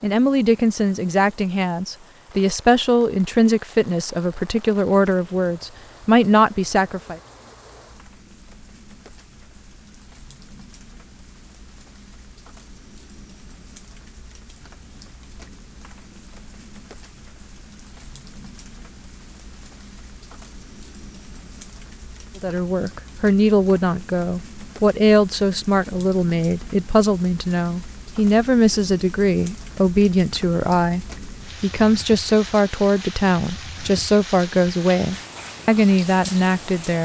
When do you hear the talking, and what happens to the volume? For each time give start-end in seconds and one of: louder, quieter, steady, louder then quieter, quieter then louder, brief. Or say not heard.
0.0-7.2 steady
22.4-37.0 steady.